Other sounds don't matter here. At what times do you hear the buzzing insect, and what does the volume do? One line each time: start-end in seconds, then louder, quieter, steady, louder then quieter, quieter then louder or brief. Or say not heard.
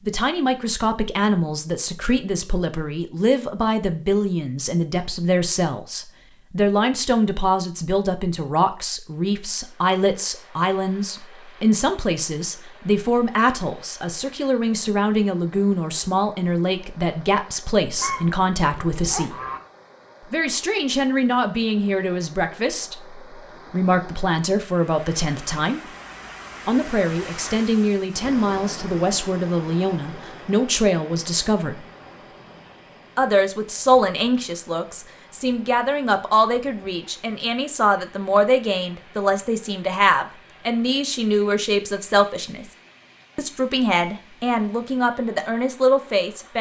not heard.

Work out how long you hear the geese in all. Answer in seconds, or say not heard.
2 s.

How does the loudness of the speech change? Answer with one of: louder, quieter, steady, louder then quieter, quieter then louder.
steady.